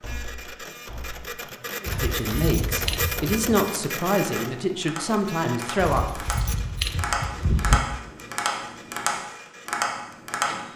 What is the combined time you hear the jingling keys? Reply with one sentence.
You can hear the jingling keys for 4 seconds altogether.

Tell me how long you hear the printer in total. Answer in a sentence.
The printer can be heard for 11 seconds in total.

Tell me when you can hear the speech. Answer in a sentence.
You can hear the speech from 1.8 to 6.2 s.